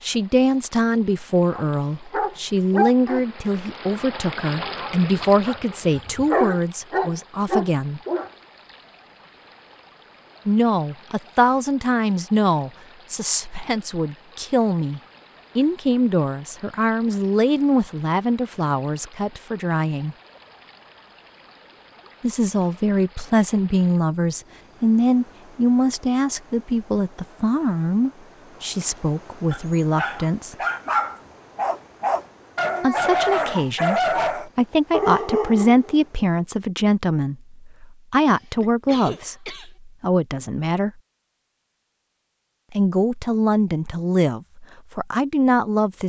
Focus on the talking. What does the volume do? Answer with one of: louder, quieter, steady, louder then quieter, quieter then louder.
steady.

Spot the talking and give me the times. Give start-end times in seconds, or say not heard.
0.0-8.0, 10.4-20.1, 22.2-30.6, 32.8-40.9, 42.7-46.0.